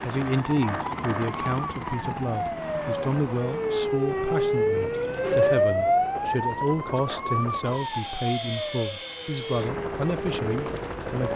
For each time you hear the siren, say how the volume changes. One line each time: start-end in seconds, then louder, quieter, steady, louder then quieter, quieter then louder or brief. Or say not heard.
0.0-11.3 louder then quieter.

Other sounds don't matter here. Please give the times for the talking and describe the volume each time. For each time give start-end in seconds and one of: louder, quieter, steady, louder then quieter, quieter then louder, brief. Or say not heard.
0.0-11.3 steady.